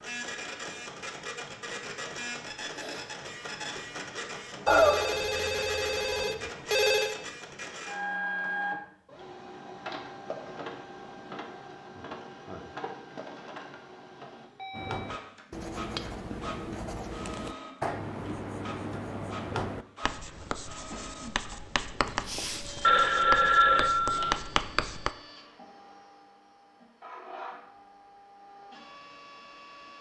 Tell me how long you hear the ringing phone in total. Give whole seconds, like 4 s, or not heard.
4 s.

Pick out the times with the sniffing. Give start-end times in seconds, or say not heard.
2.5-3.0, 22.2-22.6.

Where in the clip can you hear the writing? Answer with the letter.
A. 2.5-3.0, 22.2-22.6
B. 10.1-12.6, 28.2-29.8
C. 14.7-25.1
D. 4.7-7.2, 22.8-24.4
C.